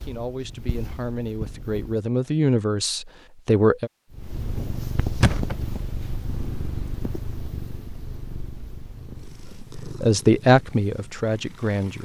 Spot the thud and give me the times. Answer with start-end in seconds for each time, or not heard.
5.2-5.8.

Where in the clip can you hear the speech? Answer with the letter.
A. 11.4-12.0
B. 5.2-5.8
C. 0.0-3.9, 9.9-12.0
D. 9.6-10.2
C.